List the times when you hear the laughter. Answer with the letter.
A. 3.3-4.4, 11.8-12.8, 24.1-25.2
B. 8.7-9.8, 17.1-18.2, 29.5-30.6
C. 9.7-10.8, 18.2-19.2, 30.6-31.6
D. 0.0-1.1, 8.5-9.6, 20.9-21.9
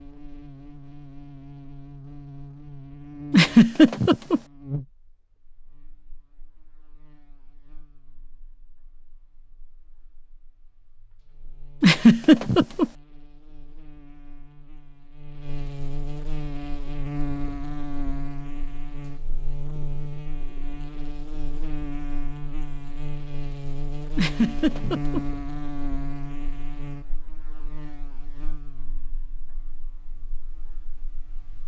A.